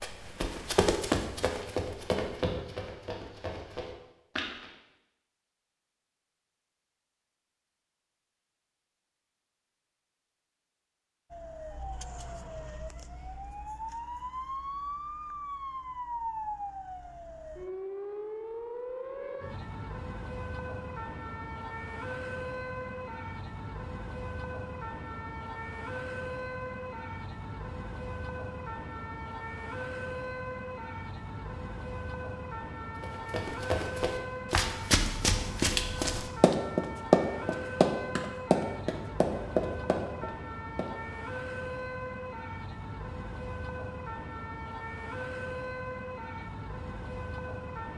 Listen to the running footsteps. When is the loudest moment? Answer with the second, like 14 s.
37 s.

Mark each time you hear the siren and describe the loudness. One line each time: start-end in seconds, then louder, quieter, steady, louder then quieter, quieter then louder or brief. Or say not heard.
11.3-47.9 steady.